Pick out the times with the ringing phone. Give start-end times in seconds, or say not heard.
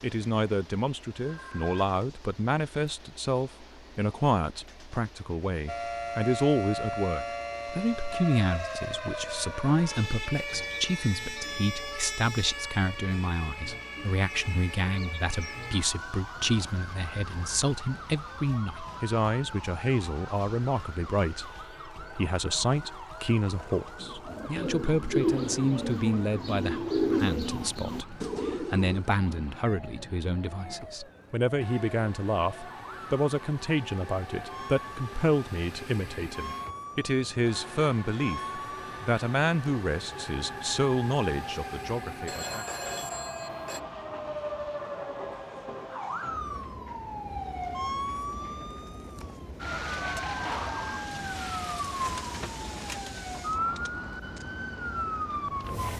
1.2-1.8, 42.2-43.8.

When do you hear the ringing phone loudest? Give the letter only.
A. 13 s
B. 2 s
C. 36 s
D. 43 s
D.